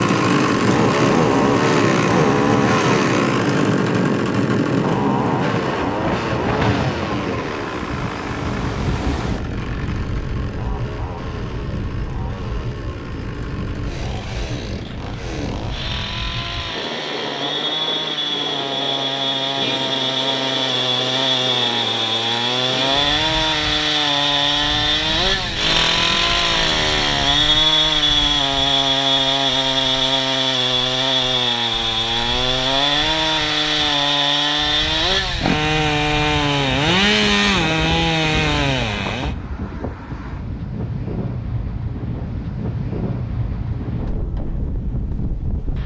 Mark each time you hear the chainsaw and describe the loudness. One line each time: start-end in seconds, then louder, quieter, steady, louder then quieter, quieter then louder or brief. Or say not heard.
0.0-39.4 quieter then louder.